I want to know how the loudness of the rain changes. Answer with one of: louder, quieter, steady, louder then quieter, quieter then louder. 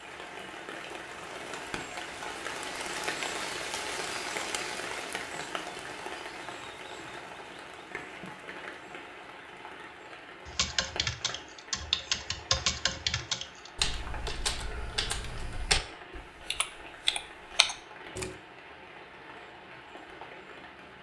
quieter.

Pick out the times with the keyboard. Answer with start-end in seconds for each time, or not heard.
10.4-18.4.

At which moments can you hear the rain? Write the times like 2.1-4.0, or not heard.
0.0-20.9.